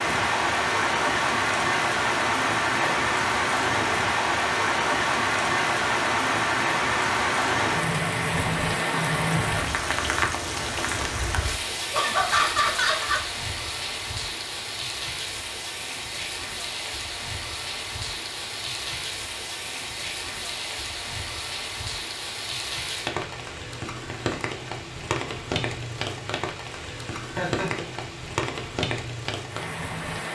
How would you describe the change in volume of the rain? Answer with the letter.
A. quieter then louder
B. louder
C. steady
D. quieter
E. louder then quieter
D.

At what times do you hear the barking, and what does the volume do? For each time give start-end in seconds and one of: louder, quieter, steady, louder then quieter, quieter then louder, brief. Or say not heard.
not heard.